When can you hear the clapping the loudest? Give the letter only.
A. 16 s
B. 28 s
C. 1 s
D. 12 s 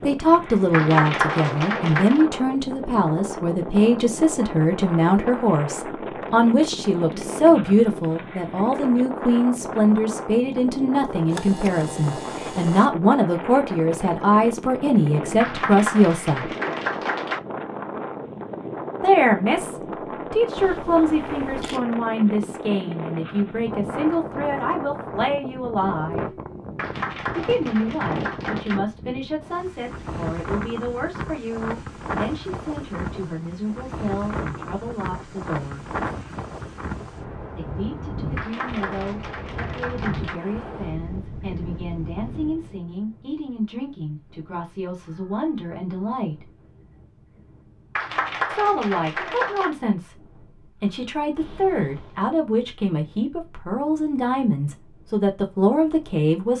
C.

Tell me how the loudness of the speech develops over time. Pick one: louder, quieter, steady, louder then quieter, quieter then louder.
quieter then louder.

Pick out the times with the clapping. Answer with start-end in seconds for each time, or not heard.
0.7-2.2, 15.4-17.4, 26.8-28.8, 38.4-40.4, 48.0-49.8.